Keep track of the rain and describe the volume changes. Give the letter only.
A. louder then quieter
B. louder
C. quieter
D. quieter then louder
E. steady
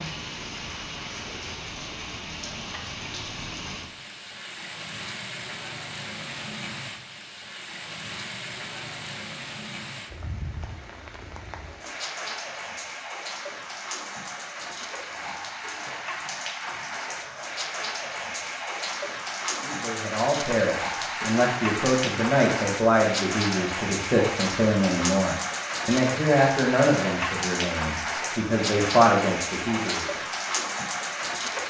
B.